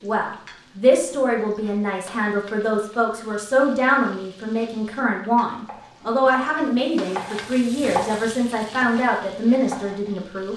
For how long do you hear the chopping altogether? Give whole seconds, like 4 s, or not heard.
5 s.